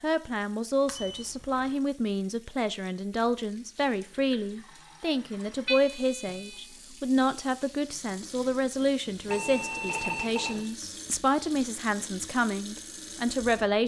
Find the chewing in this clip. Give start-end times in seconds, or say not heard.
not heard.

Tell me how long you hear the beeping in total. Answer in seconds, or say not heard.
3 s.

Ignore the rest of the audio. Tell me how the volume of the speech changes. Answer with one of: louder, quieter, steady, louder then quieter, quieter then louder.
steady.